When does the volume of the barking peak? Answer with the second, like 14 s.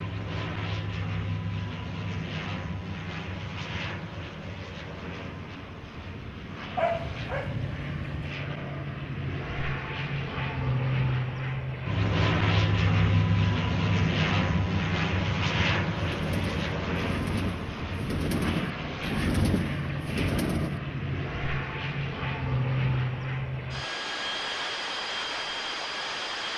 7 s.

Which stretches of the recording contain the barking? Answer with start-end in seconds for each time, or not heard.
6.8-8.3.